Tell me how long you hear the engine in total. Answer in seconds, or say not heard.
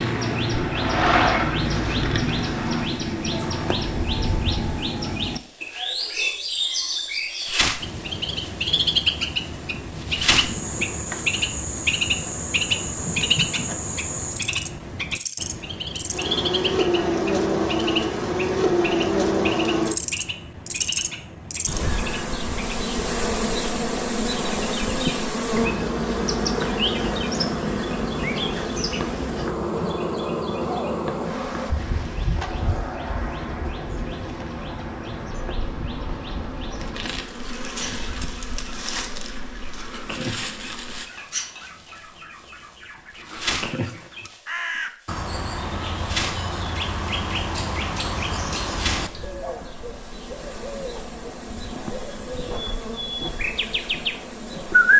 3 s.